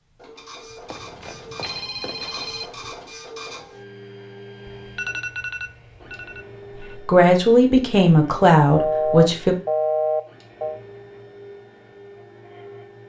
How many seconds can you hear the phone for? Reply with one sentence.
The phone can be heard for 6 seconds in total.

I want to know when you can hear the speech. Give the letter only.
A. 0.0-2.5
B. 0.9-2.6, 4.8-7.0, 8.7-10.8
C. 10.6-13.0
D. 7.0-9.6
D.